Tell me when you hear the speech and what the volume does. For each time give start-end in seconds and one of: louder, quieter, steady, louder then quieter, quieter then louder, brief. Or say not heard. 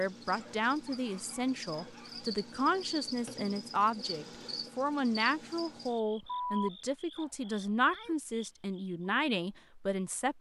0.0-10.3 steady.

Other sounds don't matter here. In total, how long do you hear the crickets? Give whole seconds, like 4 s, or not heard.
9 s.